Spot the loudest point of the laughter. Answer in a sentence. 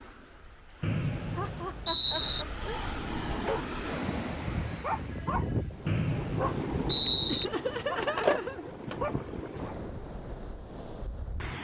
The loudest moment of the laughter is at 8 seconds.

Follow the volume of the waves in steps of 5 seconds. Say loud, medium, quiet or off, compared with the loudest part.
loud, loud, medium.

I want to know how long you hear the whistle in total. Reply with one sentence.
You can hear the whistle for 3 seconds altogether.